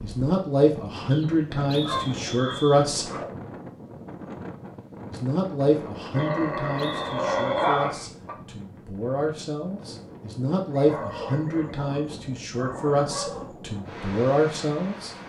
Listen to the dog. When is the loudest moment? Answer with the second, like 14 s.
8 s.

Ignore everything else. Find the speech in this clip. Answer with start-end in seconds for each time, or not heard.
0.0-3.1, 5.1-15.1.